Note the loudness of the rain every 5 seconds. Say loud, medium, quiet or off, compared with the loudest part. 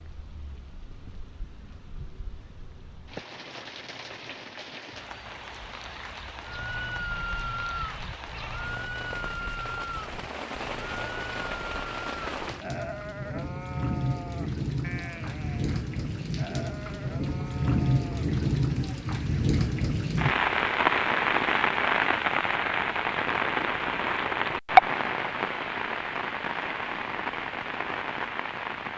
quiet, quiet, medium, medium, loud, medium.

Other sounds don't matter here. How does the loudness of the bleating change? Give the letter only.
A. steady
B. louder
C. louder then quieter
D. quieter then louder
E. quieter
E.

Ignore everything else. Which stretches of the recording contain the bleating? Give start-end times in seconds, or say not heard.
6.5-18.3.